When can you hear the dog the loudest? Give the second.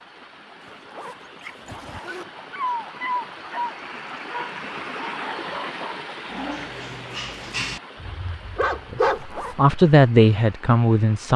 9 s.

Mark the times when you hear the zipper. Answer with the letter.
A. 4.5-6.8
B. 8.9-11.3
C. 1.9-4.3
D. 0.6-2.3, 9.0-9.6
D.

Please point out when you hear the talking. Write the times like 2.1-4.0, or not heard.
8.9-11.3.